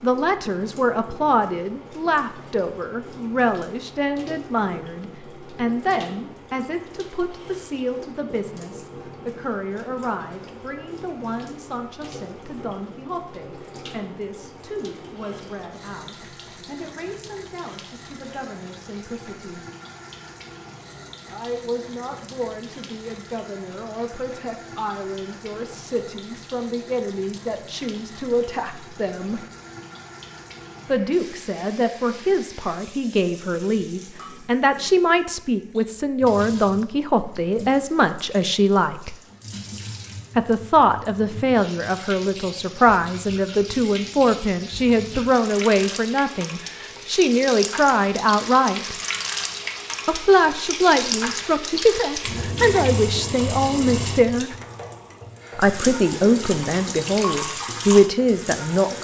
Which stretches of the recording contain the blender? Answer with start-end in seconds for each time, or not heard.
not heard.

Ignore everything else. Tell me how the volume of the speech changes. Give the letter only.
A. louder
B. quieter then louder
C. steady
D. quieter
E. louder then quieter
B.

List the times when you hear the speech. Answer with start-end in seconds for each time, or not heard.
0.0-19.6, 21.2-29.4, 30.9-39.1, 40.4-49.0, 50.0-54.5, 55.5-58.9.